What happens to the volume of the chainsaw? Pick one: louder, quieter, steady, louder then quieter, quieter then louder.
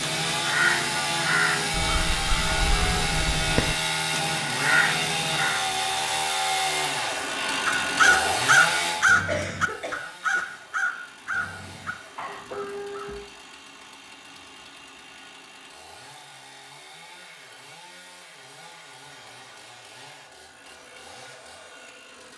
quieter.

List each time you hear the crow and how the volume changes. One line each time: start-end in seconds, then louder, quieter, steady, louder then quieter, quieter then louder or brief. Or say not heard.
0.0-5.7 quieter then louder
7.7-13.3 quieter.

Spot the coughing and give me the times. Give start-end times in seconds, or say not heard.
9.2-9.9.